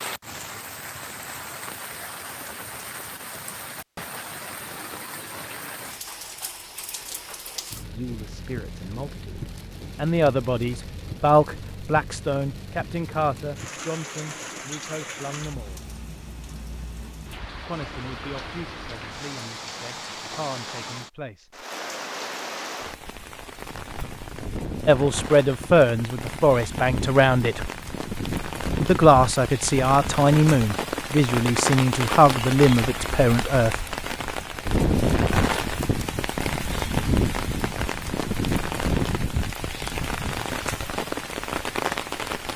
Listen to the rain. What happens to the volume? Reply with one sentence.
The volume of the rain goes up.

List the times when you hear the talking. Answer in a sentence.
The talking can be heard from 7.8 to 15.8 s, from 17.6 to 21.6 s, from 24.9 to 27.7 s and from 28.8 to 33.9 s.